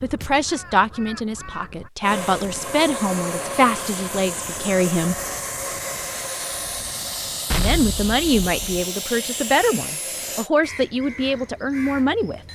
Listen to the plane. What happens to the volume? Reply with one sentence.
The loudness of the plane stays about the same.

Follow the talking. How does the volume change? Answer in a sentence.
The volume of the talking stays about the same.